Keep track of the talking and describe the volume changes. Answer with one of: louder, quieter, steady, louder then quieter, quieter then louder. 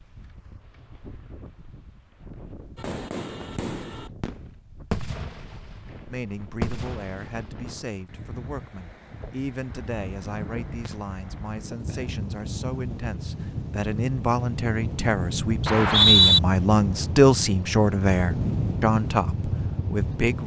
louder.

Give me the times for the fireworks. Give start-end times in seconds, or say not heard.
2.8-8.1.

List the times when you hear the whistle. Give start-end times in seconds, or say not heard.
15.7-16.4.